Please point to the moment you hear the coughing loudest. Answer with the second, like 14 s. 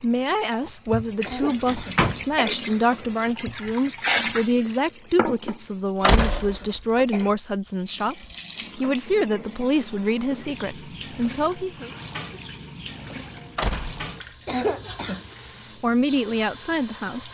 15 s.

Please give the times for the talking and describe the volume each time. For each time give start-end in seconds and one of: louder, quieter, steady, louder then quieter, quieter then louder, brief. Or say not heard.
0.0-11.9 steady
15.8-17.3 brief.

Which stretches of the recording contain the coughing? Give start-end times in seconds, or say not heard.
1.2-2.5, 6.0-7.3, 14.4-15.3.